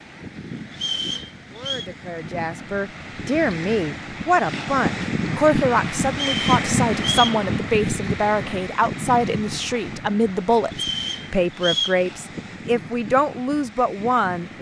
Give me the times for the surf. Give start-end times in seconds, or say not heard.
0.0-14.5.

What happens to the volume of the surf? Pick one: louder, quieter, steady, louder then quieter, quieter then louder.
louder then quieter.